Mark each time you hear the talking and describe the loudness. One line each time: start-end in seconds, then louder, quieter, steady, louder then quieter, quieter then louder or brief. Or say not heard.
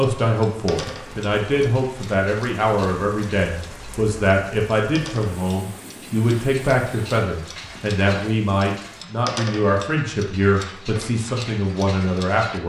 0.0-12.6 steady.